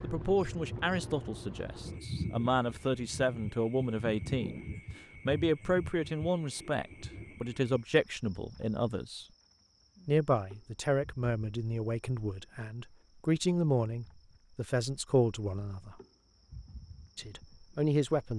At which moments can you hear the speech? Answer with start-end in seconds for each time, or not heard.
0.0-9.2, 10.1-15.9, 17.1-18.3.